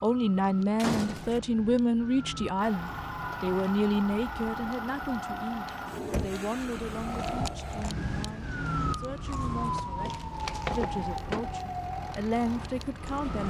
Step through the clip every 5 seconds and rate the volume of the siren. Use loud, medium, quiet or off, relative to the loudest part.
medium, loud, loud.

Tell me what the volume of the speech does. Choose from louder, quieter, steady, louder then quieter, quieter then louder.
quieter then louder.